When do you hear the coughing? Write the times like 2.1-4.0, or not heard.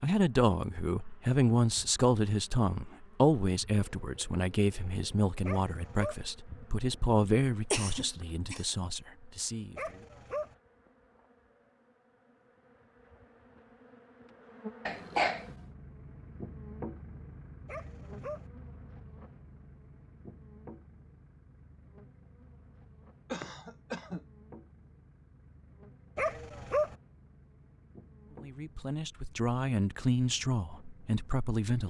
7.2-8.7, 14.8-15.6, 23.3-24.2.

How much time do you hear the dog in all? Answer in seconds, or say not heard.
3 s.